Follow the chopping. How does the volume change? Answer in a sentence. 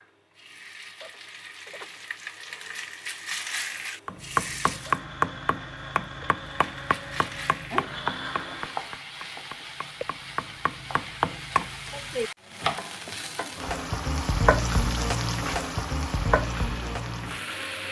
The volume of the chopping goes down, then up.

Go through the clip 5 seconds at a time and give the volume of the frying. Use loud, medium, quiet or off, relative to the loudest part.
medium, medium, loud, loud.